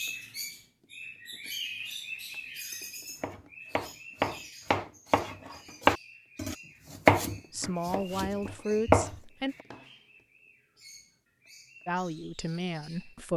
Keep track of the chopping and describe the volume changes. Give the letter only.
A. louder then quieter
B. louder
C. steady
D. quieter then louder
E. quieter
A.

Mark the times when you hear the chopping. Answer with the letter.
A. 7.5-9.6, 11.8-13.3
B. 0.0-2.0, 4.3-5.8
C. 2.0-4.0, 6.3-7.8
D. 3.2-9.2
D.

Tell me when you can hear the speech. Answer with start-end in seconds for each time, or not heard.
7.5-9.6, 11.8-13.3.